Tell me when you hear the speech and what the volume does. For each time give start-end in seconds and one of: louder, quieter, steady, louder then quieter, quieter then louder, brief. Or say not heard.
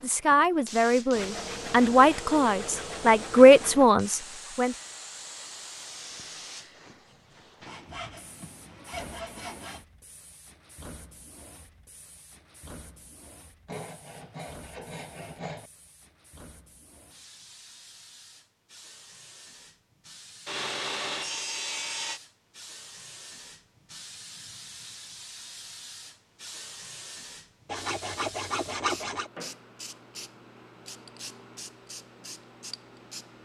0.0-4.8 louder then quieter.